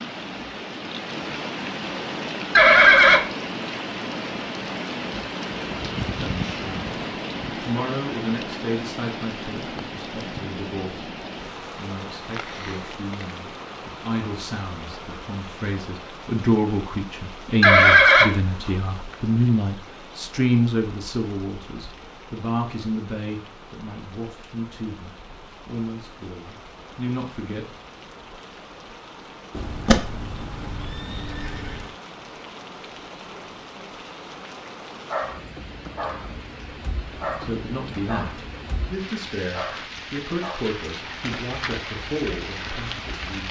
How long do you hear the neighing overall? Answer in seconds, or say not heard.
4 s.